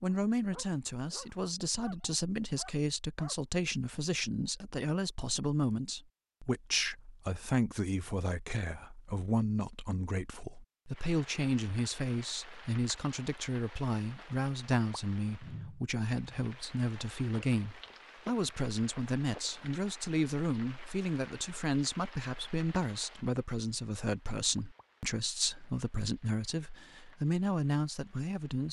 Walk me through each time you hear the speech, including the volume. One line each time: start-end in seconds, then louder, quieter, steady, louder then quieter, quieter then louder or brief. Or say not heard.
0.0-28.6 steady.